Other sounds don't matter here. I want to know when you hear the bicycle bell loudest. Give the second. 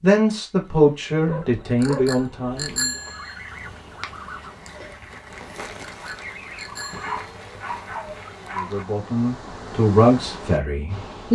3 s.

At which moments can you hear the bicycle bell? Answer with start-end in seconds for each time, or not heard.
1.8-3.4, 5.8-7.2.